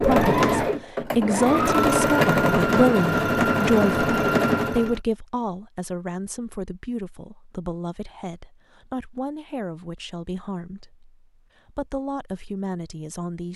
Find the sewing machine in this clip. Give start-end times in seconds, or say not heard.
0.0-5.0.